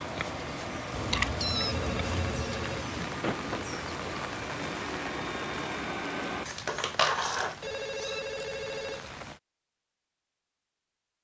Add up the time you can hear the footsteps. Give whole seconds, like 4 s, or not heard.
not heard.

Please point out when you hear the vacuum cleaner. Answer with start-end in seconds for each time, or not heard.
0.0-6.5.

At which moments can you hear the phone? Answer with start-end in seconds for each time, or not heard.
1.6-2.9, 7.6-9.2.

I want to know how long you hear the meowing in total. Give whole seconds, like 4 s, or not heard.
4 s.